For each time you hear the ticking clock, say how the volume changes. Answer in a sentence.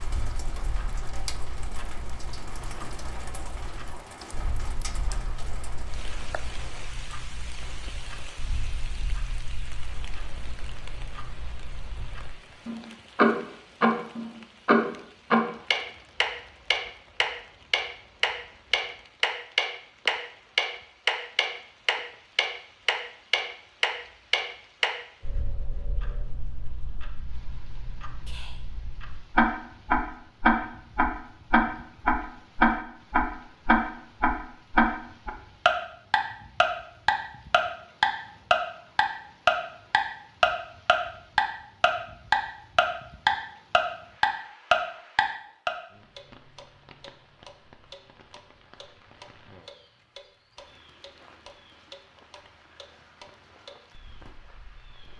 You can hear the ticking clock from 0.0 to 55.1 s, getting louder then quieter.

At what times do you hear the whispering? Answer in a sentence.
You can hear the whispering from 28.2 to 28.8 s.